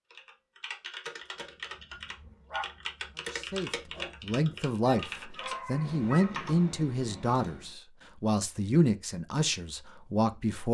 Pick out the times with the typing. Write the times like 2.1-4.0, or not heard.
0.1-7.8.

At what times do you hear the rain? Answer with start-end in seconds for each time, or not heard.
not heard.